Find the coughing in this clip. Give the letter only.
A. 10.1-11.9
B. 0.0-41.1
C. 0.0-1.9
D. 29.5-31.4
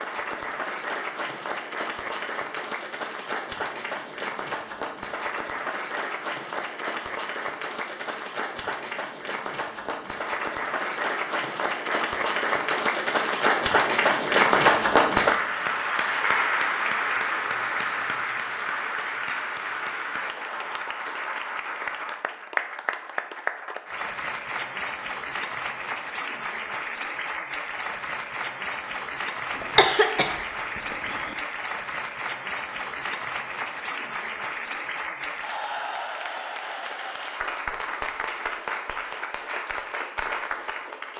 D.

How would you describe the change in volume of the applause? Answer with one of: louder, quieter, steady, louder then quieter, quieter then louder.
louder then quieter.